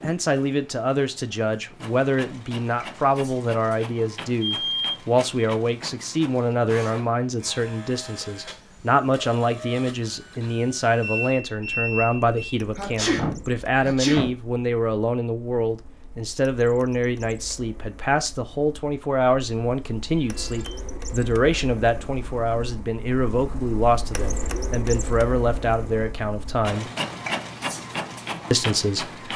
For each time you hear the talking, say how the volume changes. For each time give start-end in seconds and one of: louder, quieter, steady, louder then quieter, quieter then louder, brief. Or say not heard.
0.0-26.9 steady
28.5-29.2 brief.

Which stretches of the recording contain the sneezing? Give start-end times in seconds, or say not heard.
12.8-14.3.